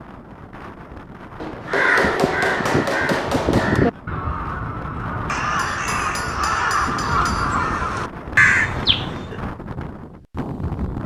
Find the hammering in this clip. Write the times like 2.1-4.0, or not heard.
1.4-3.8, 5.5-7.5.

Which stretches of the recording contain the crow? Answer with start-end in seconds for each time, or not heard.
1.6-9.4.